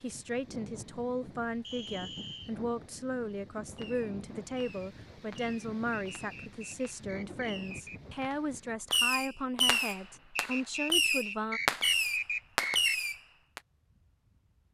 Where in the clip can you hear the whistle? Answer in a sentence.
The whistle can be heard from 1.6 to 2.5 s, from 6.2 to 8.2 s and from 10.3 to 12.9 s.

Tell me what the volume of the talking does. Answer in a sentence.
The volume of the talking stays about the same.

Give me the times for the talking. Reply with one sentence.
The talking can be heard from 0.0 to 11.6 s.